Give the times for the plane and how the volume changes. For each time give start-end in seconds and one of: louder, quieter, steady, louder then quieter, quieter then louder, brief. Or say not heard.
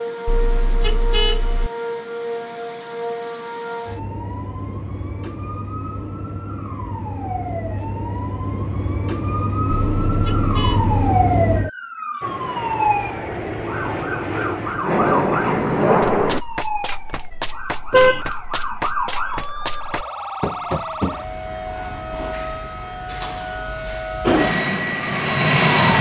12.2-16.4 louder
24.2-25.9 brief.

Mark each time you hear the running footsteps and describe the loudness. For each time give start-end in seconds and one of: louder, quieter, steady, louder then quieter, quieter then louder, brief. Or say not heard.
16.0-21.2 louder.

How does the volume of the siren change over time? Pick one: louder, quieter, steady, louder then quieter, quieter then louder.
louder then quieter.